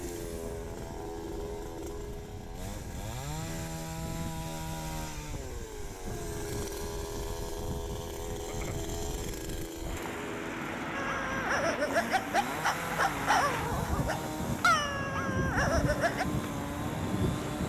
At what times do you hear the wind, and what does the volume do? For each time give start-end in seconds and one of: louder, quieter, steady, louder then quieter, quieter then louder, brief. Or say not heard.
0.0-17.6 louder.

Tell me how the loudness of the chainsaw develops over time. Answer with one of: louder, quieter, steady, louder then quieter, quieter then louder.
steady.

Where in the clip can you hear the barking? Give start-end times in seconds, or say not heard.
10.9-16.2.